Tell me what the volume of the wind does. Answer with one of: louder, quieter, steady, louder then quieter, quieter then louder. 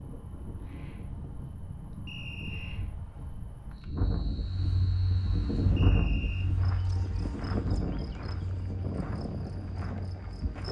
louder then quieter.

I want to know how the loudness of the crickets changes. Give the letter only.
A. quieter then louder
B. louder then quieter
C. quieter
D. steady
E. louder
E.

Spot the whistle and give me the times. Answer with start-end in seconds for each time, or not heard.
2.0-2.9, 5.8-6.5.